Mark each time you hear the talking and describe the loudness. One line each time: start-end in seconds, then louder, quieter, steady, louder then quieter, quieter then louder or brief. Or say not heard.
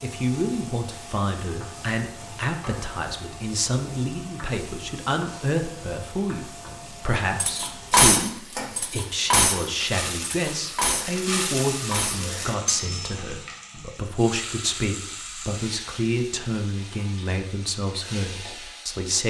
0.0-19.2 steady.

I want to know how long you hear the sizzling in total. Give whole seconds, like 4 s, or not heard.
19 s.